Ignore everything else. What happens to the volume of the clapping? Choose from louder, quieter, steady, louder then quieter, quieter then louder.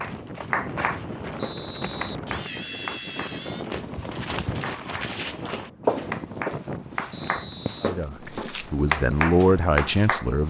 quieter then louder.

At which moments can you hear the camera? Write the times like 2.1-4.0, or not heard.
2.2-3.6.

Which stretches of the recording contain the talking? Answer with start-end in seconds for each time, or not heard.
7.8-10.4.